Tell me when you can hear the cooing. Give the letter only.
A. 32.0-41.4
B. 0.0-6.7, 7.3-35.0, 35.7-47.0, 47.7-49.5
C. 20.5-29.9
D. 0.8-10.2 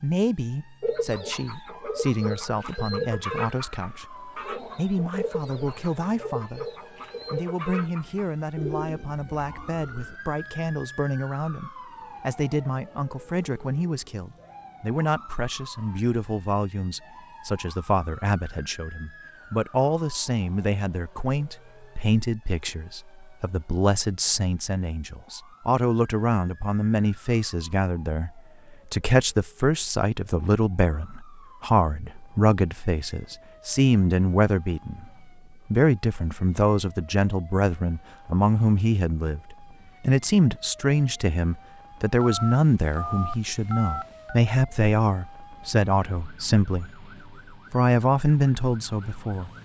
D.